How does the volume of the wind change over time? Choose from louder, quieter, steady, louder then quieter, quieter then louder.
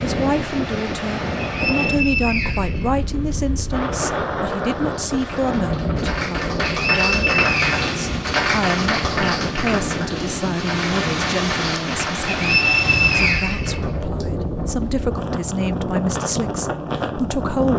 steady.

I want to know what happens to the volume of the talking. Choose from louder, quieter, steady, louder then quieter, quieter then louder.
steady.